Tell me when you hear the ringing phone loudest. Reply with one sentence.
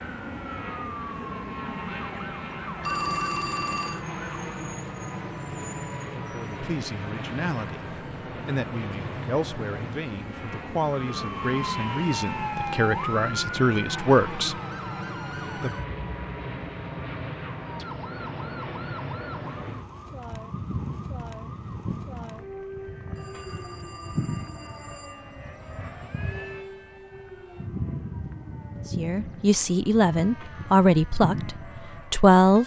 The volume of the ringing phone peaks at 3 seconds.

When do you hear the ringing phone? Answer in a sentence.
You can hear the ringing phone from 2.8 to 4.0 s and from 23.1 to 25.9 s.